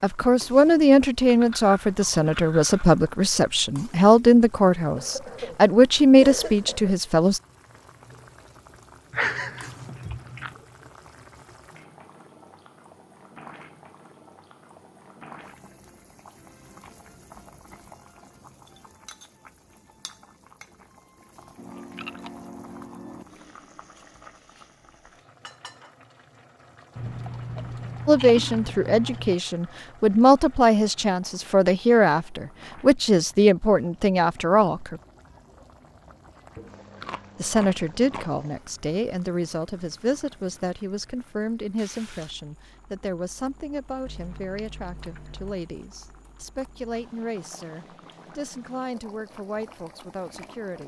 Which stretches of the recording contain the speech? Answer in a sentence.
The speech can be heard from 0.0 to 7.4 s, from 28.1 to 35.0 s and from 37.4 to 50.8 s.